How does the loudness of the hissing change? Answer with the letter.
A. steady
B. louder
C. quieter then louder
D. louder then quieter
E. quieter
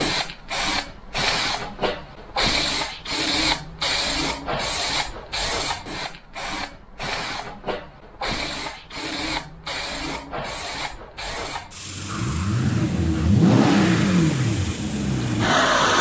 E.